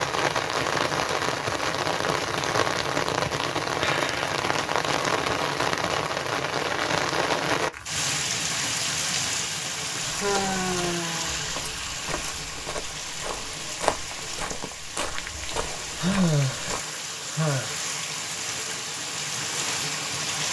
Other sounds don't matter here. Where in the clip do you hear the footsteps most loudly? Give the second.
14 s.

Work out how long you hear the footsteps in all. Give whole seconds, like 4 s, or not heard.
7 s.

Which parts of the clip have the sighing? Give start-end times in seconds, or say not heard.
3.8-4.3, 10.2-11.4, 15.9-17.8.